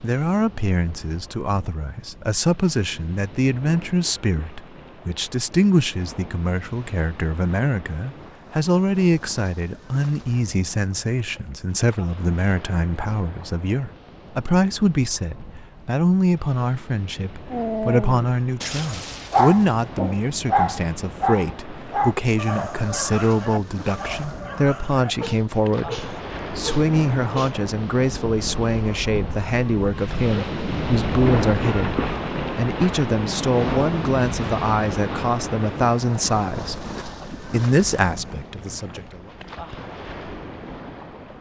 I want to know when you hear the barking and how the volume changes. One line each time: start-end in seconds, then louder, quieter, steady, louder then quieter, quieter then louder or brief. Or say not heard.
17.5-27.6 quieter.